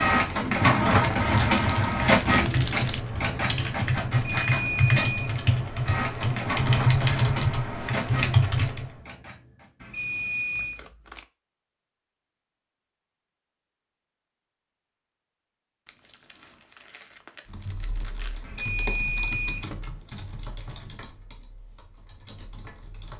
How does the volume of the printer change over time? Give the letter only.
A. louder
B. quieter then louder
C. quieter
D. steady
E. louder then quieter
C.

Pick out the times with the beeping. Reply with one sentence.
You can hear the beeping from 4.1 to 5.4 s, from 9.8 to 10.8 s and from 18.4 to 19.7 s.